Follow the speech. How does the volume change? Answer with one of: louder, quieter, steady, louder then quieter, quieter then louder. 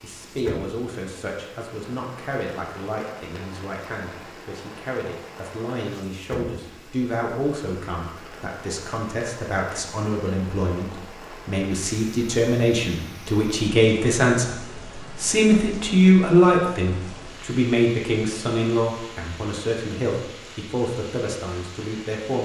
louder then quieter.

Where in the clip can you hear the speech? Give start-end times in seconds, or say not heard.
0.0-22.4.